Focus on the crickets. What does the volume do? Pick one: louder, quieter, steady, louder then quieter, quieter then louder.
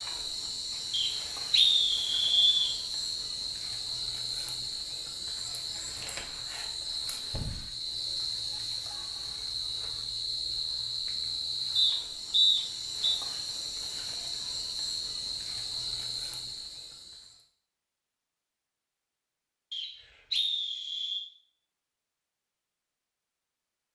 steady.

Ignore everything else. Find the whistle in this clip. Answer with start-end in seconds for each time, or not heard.
0.9-2.8, 11.8-13.2, 19.7-21.2.